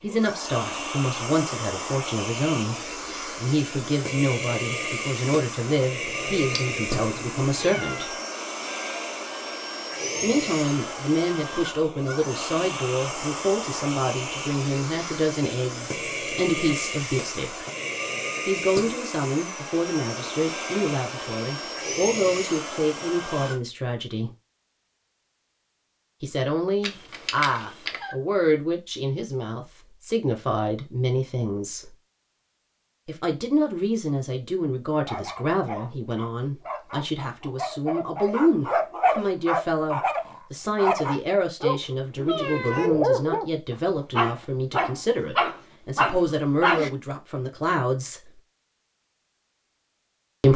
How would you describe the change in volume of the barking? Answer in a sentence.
The loudness of the barking goes up.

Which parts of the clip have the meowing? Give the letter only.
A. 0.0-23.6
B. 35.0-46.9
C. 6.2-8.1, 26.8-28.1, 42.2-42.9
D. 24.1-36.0
C.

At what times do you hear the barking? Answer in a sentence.
The barking can be heard from 35.0 to 46.9 s.